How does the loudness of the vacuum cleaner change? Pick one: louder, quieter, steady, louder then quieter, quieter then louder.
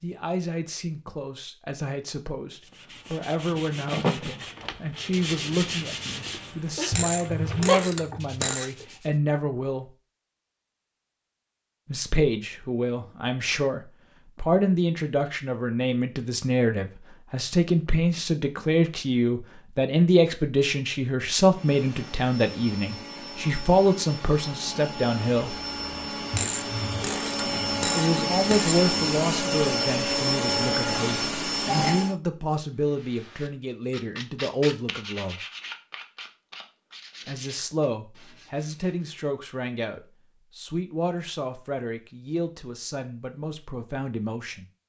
louder.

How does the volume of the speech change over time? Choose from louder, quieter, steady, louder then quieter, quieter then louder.
louder then quieter.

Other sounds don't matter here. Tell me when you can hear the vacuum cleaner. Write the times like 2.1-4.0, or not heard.
21.4-32.1.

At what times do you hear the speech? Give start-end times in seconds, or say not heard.
0.0-9.9, 11.8-25.6, 27.9-35.4, 37.2-44.6.